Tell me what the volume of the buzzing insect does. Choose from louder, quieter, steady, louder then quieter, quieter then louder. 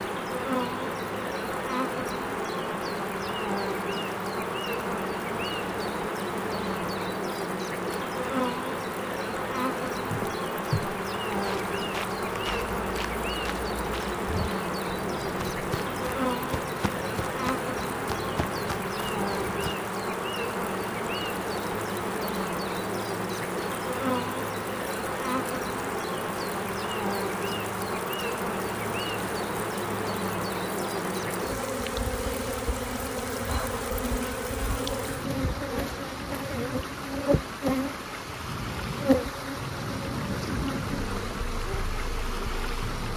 steady.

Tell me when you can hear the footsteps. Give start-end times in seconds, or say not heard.
10.1-19.8.